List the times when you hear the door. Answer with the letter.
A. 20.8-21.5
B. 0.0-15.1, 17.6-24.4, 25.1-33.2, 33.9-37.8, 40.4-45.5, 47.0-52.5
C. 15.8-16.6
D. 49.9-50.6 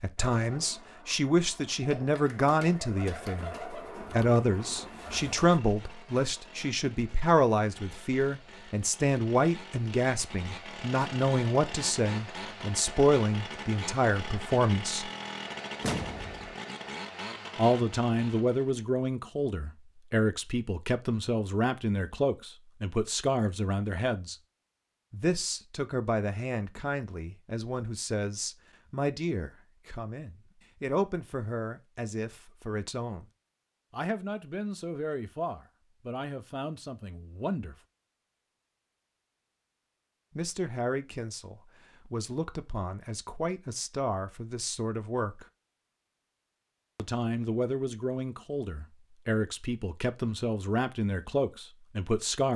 C.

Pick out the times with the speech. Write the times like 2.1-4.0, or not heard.
0.0-15.1, 17.6-24.4, 25.1-33.2, 33.9-37.8, 40.4-45.5, 47.0-52.5.